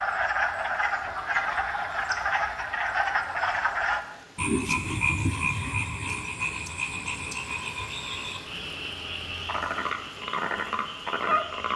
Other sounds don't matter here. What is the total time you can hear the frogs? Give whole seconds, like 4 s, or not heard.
12 s.